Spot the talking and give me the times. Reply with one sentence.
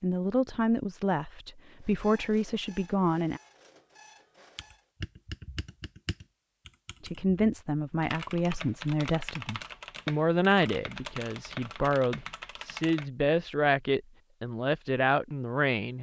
You can hear the talking from 0.0 to 3.4 s and from 7.0 to 15.9 s.